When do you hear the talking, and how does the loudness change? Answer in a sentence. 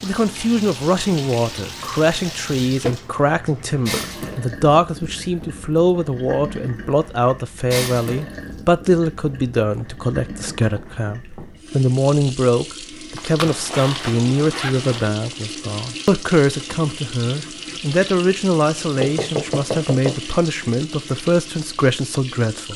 The talking can be heard from 0.0 to 22.7 s, at a steady volume.